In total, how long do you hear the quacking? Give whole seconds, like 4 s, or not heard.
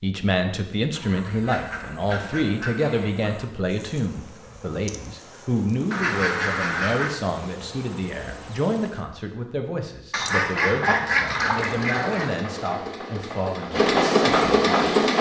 6 s.